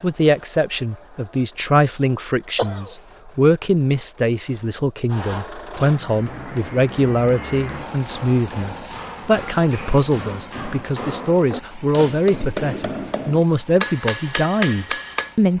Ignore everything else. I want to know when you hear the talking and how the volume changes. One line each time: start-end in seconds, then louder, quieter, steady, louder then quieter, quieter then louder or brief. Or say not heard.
0.0-15.5 steady.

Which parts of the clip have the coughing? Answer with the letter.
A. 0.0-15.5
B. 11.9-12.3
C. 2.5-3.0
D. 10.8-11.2
C.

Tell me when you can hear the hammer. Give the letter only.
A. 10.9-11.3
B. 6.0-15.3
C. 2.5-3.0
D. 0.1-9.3
B.